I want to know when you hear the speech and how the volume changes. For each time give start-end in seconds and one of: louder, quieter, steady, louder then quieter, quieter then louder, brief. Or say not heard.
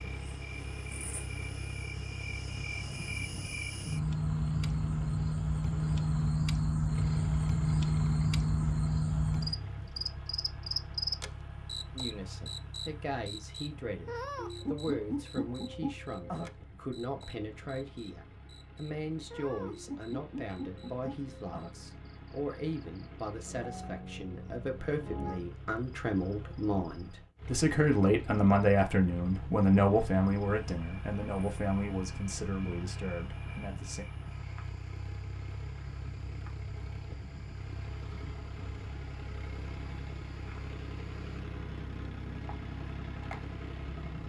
11.9-34.0 louder.